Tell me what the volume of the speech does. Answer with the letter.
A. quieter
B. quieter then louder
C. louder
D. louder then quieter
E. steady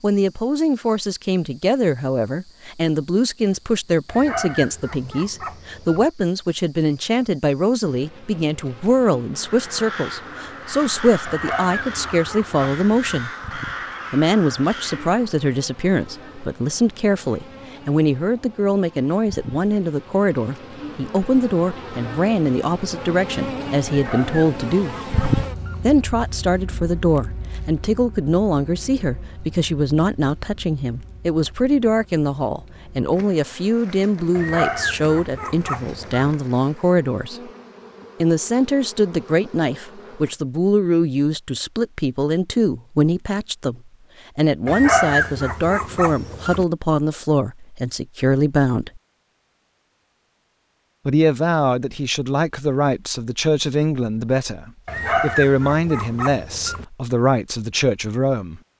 E.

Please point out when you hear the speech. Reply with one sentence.
The speech can be heard from 0.0 to 13.3 s, from 14.1 to 24.9 s, from 25.8 to 37.5 s, from 38.2 to 49.0 s and from 51.0 to 58.6 s.